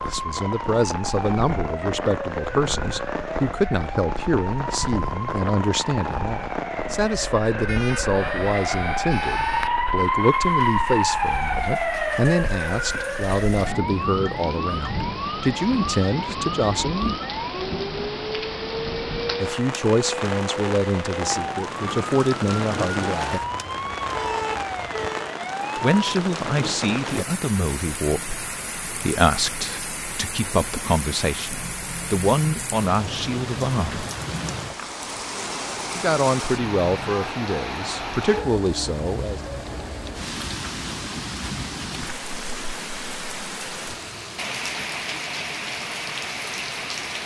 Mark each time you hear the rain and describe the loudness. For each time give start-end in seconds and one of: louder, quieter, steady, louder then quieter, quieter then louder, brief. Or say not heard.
0.0-47.2 steady.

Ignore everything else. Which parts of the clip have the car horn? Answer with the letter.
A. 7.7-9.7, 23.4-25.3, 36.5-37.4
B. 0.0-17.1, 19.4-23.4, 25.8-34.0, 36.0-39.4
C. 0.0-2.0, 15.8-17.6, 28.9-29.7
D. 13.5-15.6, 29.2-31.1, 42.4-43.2
A.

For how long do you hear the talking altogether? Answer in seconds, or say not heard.
33 s.